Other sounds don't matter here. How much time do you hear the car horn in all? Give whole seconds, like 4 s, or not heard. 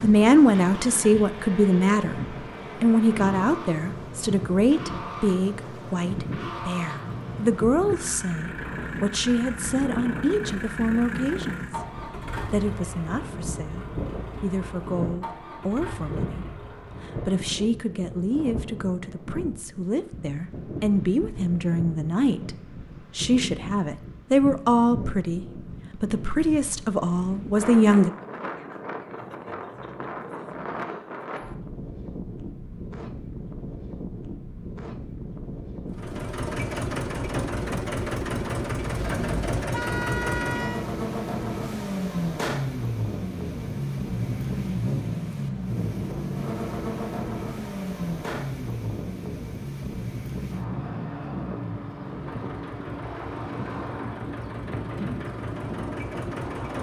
2 s.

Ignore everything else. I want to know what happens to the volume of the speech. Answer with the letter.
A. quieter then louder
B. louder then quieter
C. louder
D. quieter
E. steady
A.